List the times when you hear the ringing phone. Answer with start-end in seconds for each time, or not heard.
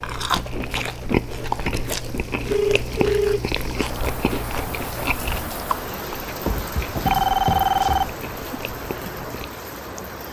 2.5-3.4, 6.5-8.2.